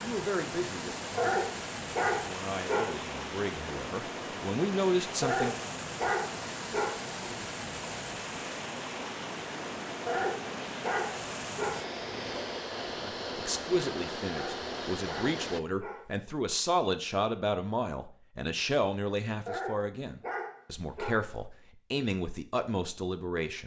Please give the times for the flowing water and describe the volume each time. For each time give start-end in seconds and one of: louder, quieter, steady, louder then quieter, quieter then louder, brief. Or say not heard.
0.0-15.6 steady.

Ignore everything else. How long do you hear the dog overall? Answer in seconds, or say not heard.
10 s.